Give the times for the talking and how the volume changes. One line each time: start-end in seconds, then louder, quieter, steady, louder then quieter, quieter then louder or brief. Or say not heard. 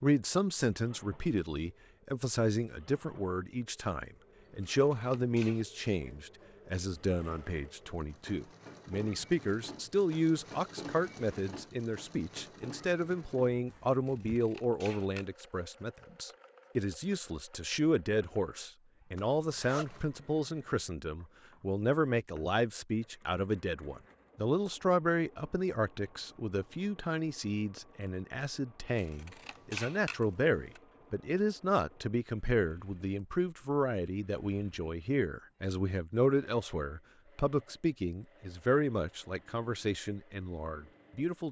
0.0-41.4 steady.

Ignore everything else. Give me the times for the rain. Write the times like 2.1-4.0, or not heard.
not heard.